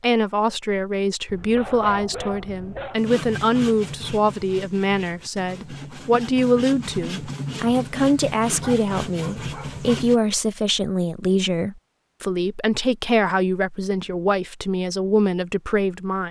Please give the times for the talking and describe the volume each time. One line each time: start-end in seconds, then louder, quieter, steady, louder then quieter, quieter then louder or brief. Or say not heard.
0.0-16.2 steady.